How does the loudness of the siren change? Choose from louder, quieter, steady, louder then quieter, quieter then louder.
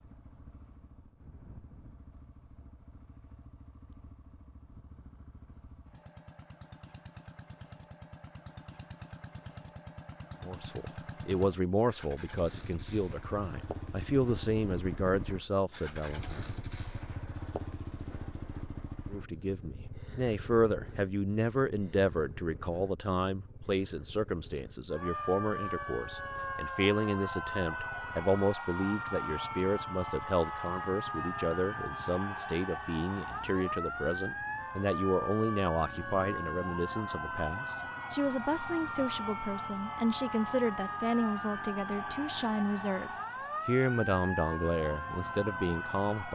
steady.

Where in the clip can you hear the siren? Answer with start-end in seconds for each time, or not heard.
24.9-46.2.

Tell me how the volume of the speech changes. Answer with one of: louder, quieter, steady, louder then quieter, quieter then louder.
steady.